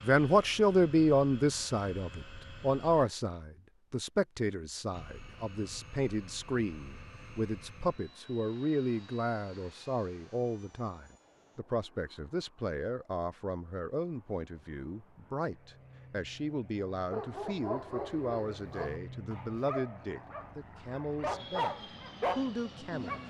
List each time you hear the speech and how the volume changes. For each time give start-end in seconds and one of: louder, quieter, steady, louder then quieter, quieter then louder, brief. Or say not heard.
0.0-23.2 quieter.